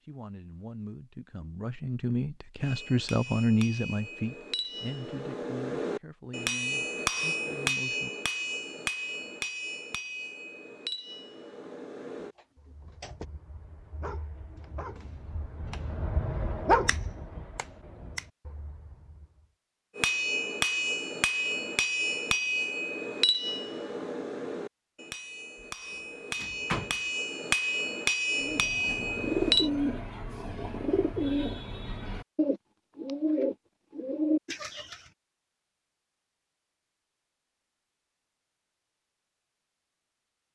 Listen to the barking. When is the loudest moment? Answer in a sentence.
The volume of the barking peaks at 17 seconds.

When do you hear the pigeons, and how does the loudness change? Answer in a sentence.
The pigeons can be heard from 28.4 to 35.0 s, getting quieter then louder.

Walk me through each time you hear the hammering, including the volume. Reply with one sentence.
You can hear the hammering from 2.6 to 12.3 s, getting louder then quieter; and from 19.9 to 29.7 s, getting quieter then louder.